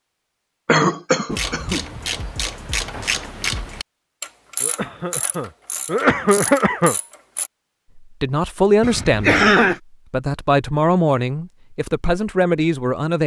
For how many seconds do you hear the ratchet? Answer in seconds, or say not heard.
6 s.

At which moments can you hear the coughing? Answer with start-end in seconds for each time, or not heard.
0.7-1.9, 4.6-7.0, 8.8-9.8.